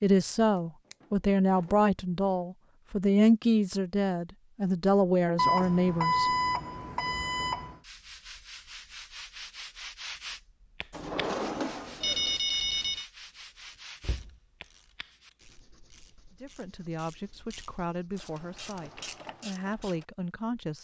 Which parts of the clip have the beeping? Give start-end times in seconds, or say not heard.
5.3-7.8, 12.0-13.1.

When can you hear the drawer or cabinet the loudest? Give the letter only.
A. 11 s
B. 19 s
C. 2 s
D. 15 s
A.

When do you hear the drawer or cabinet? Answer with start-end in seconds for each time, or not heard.
0.9-1.9, 10.9-12.4, 14.0-14.4.